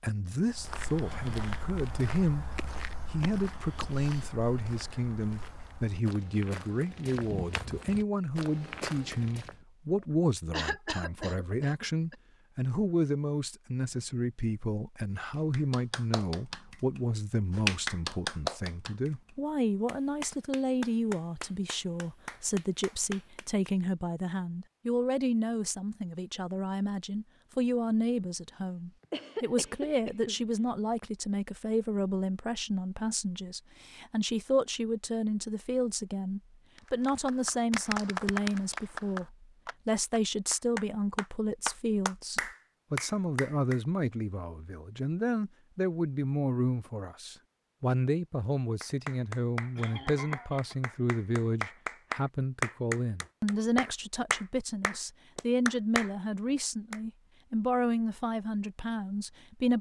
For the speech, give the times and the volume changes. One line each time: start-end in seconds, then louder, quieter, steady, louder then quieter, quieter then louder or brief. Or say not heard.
0.0-2.5 brief
3.1-59.7 steady.